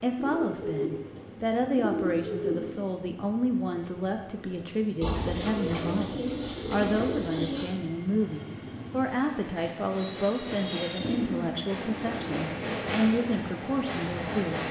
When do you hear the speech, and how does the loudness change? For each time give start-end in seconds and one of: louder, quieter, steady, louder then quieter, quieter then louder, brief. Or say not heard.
0.0-14.6 steady.